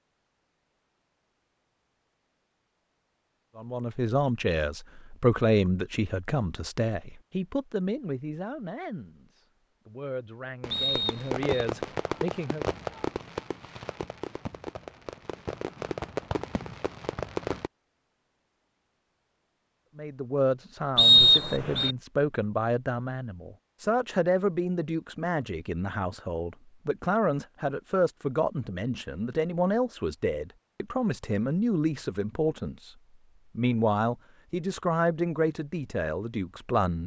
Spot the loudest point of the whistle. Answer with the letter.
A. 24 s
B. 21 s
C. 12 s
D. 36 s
B.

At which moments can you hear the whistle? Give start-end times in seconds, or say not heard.
10.7-11.7, 20.9-21.9.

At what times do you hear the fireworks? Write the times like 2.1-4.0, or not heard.
10.6-17.7.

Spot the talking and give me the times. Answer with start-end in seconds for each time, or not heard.
3.5-12.7, 19.9-33.0, 33.5-37.0.